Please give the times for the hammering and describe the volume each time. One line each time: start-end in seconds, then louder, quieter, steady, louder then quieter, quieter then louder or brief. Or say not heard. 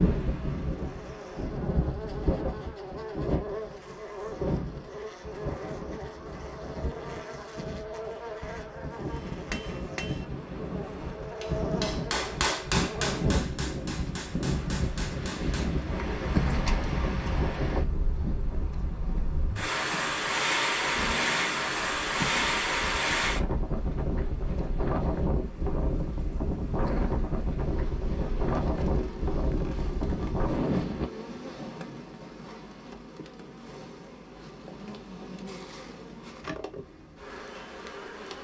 9.1-15.8 louder then quieter.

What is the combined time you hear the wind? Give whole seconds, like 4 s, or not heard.
31 s.